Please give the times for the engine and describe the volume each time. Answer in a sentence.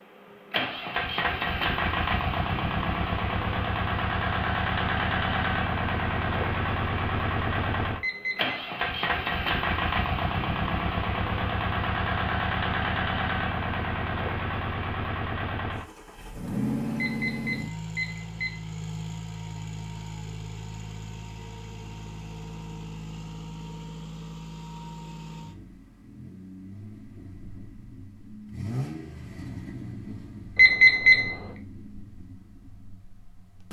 The engine can be heard from 0.0 to 33.6 s, getting quieter.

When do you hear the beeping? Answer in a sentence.
You can hear the beeping from 8.0 to 8.6 s, from 17.0 to 18.6 s and from 30.6 to 31.4 s.